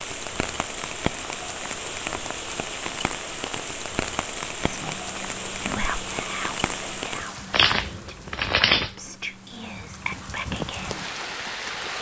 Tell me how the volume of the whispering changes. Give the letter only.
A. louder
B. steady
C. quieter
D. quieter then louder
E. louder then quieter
D.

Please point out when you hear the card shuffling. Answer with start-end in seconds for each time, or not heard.
7.5-8.9.